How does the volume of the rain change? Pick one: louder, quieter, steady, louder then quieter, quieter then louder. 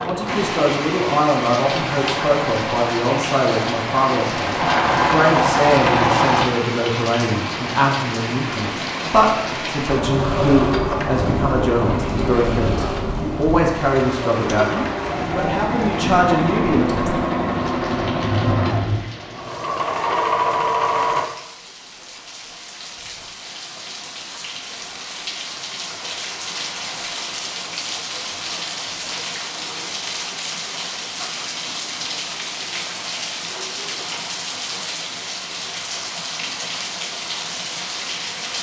quieter then louder.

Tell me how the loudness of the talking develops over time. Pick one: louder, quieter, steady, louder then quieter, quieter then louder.
steady.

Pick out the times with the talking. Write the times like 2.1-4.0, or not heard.
0.0-17.1.